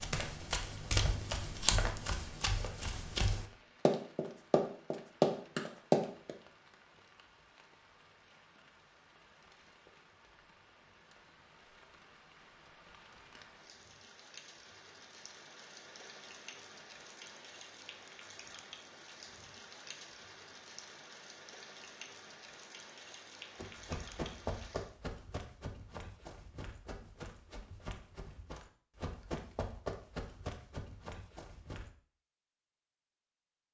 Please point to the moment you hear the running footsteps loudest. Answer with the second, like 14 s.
6 s.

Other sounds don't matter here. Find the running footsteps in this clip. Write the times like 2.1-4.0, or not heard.
0.0-6.3, 23.6-31.9.